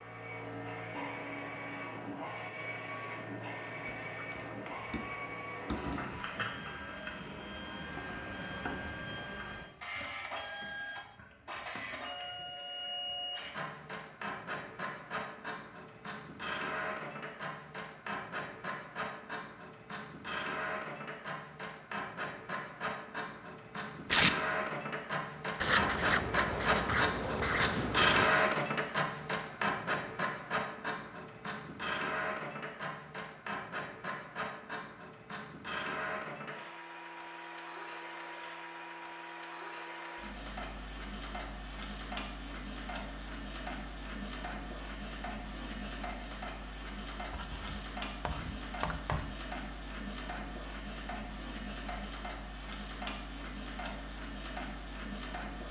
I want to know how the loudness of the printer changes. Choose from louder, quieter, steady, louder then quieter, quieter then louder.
louder then quieter.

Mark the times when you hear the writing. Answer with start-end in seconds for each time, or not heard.
3.9-6.2, 25.6-28.2, 47.3-49.4.